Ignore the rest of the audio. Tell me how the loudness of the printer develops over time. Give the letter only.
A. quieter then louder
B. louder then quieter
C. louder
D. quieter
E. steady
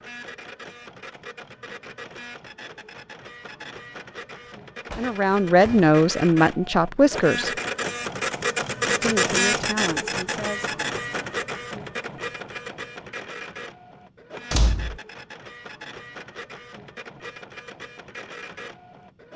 B.